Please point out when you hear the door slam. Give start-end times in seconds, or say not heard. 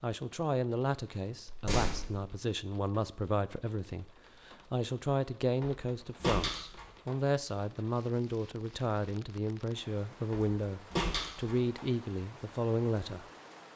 1.4-2.2, 5.6-7.2, 10.3-11.8.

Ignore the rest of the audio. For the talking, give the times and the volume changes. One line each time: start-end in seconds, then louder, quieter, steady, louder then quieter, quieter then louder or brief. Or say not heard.
0.0-13.2 steady.